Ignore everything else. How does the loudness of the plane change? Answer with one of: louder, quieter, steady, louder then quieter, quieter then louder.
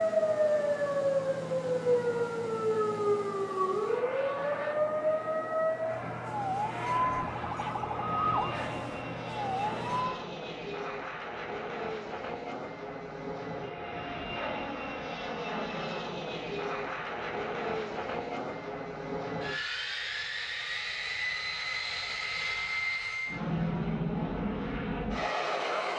louder.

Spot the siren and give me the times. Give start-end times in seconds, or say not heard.
0.0-10.2.